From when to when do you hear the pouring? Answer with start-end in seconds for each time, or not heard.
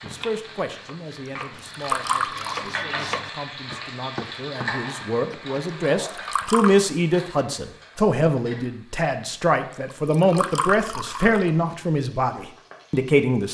1.6-2.8, 6.0-6.8, 9.9-11.5.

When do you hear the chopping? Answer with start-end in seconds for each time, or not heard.
0.1-5.6.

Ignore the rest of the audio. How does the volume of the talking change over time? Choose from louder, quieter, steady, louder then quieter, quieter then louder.
louder.